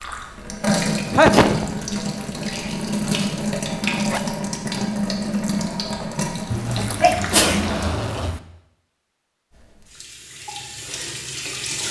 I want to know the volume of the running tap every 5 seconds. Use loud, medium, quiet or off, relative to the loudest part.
loud, loud, medium.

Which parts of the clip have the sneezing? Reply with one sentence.
You can hear the sneezing from 1.1 to 1.6 s and from 6.5 to 8.4 s.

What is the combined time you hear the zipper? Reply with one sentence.
You can hear the zipper for 2 seconds altogether.